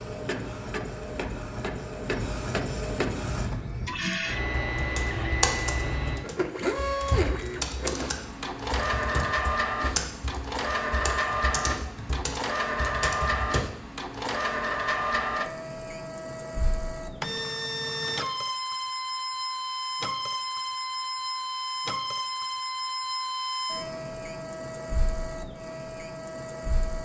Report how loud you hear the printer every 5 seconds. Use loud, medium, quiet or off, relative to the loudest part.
loud, loud, loud, loud, loud, medium.